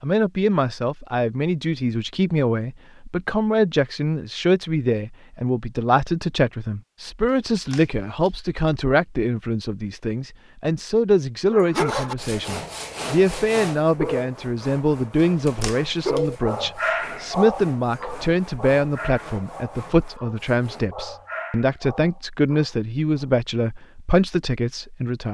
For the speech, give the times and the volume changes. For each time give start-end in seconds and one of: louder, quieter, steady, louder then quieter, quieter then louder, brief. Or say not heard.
0.0-25.2 steady.